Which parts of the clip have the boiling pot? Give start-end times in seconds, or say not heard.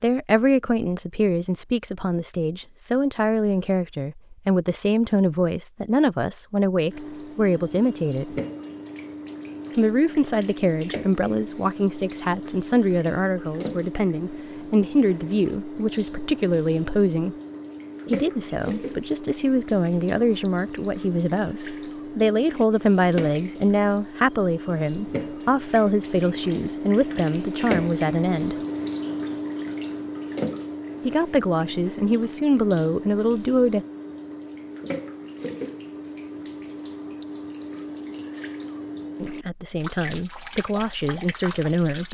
not heard.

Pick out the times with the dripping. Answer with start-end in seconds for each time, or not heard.
6.8-42.0.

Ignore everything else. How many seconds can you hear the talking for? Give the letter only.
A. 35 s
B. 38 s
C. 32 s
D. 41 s
C.